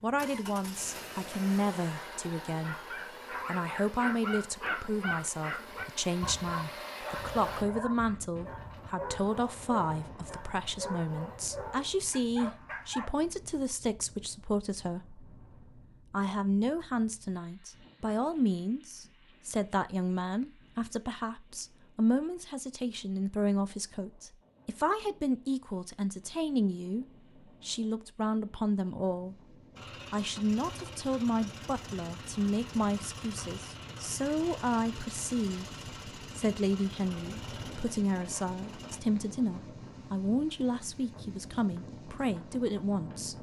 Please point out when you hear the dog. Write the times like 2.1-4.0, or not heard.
2.6-13.1.